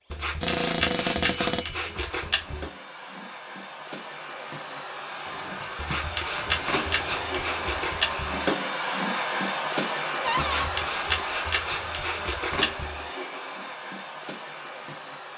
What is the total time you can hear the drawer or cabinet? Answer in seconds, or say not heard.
4 s.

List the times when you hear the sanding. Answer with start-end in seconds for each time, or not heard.
0.1-2.7, 5.8-8.4, 10.3-13.1.